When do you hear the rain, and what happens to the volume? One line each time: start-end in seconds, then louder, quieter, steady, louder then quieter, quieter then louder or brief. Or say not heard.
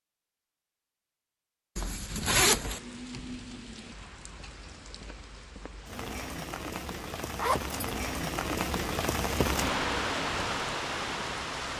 1.9-11.7 quieter then louder.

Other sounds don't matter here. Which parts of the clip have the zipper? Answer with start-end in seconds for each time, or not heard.
1.8-2.8, 7.3-7.8.